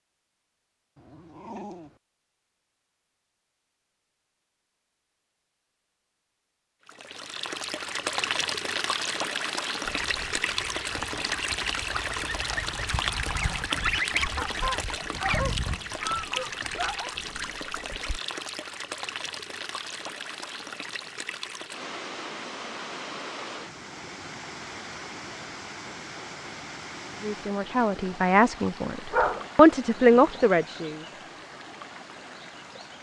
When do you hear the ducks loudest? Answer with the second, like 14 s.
14 s.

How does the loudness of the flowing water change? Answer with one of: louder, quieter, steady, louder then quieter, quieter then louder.
quieter.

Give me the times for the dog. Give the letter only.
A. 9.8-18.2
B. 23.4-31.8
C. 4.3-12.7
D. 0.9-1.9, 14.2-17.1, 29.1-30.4
D.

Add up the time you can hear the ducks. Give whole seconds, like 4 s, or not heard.
8 s.